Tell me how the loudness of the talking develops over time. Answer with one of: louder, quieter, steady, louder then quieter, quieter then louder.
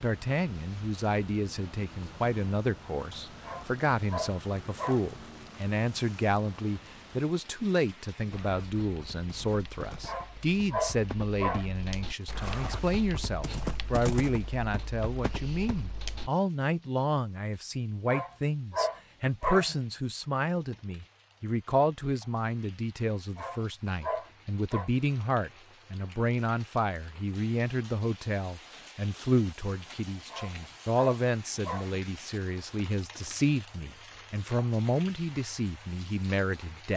steady.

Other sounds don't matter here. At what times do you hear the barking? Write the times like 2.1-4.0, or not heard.
3.4-5.1, 10.1-11.7, 18.1-19.8, 23.4-24.9, 30.3-32.0.